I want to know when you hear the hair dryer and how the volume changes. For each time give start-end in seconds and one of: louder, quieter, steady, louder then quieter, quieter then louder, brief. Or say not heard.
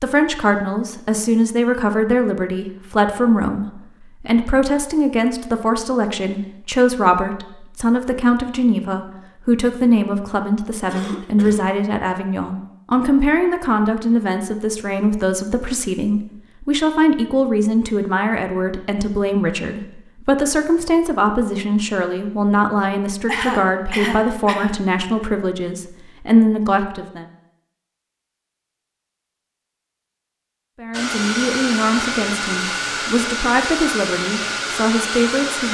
30.9-35.6 steady.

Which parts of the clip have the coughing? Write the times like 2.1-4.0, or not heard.
10.8-11.7, 23.2-24.8.